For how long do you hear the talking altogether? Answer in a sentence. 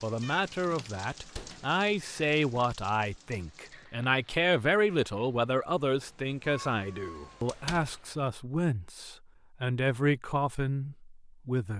You can hear the talking for 12 seconds altogether.